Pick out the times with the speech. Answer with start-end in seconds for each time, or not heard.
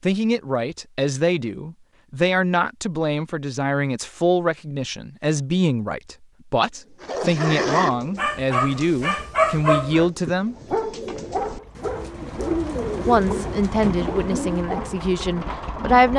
0.0-10.6, 13.1-16.1.